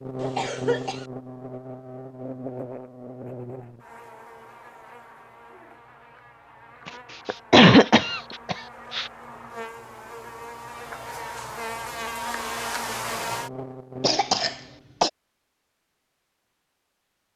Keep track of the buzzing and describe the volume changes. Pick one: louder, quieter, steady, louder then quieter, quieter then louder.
quieter then louder.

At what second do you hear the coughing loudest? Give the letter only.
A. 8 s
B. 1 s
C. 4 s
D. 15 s
A.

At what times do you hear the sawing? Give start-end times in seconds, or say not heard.
not heard.